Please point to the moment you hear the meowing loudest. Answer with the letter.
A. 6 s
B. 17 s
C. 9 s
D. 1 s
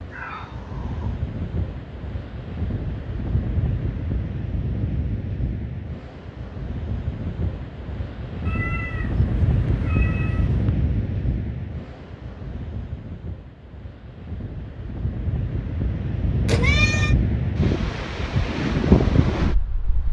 B.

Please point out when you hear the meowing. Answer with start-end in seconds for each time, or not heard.
0.1-1.2, 8.4-10.7, 16.4-17.1.